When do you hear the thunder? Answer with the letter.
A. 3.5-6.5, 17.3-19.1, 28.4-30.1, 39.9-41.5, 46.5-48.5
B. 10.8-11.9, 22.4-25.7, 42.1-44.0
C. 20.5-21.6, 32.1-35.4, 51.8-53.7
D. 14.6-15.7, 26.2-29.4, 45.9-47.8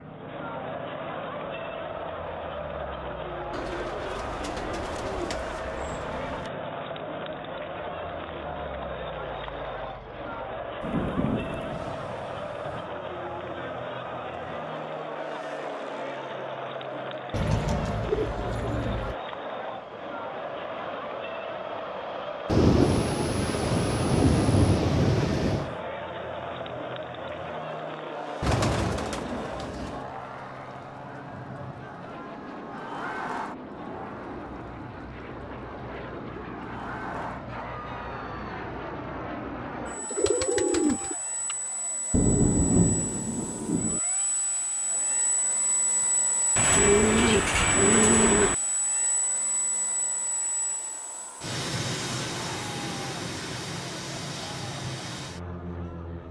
B.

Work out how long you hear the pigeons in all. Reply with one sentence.
The pigeons can be heard for 10 seconds in total.